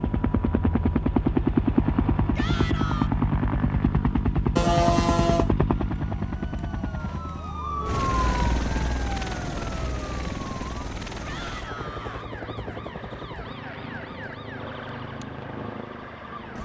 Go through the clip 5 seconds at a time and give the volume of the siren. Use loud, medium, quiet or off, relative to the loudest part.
off, loud, medium, medium.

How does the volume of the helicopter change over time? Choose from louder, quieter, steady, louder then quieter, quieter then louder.
quieter.